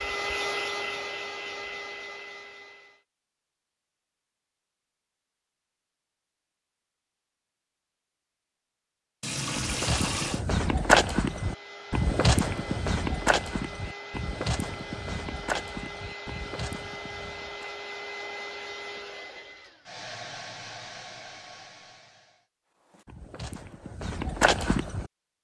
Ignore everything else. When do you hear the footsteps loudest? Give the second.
11 s.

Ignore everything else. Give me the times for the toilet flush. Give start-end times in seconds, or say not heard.
9.2-10.4.